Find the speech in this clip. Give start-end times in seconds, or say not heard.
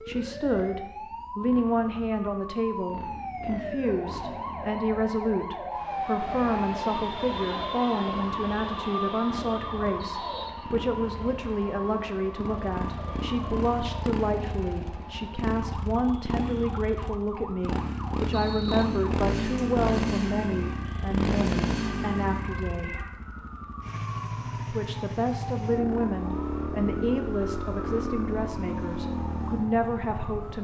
0.1-22.9, 24.7-30.5.